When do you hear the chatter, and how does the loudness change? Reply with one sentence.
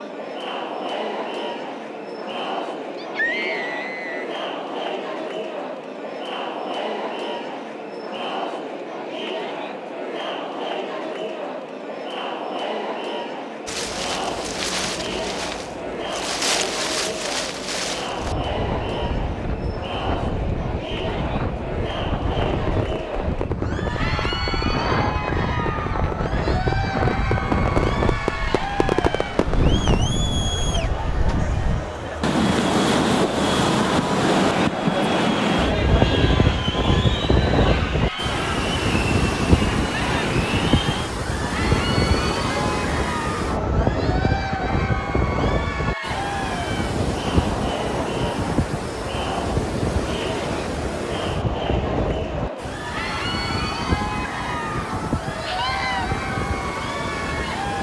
The chatter can be heard from 0.0 to 57.7 s, at a steady volume.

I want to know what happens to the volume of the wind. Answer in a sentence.
The loudness of the wind goes up, then down.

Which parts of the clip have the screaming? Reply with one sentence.
You can hear the screaming from 3.0 to 4.2 s and from 55.5 to 56.0 s.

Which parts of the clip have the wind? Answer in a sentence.
The wind can be heard from 13.7 to 57.7 s.